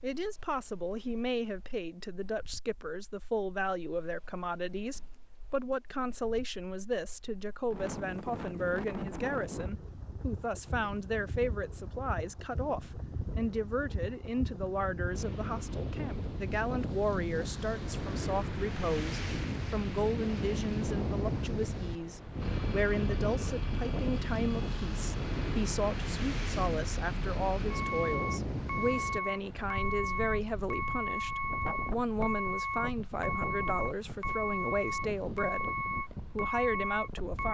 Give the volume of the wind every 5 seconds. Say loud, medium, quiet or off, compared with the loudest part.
quiet, medium, medium, loud, loud, loud, medium, medium.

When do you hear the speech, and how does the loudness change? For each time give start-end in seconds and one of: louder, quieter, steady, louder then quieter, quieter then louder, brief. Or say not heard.
0.0-37.5 steady.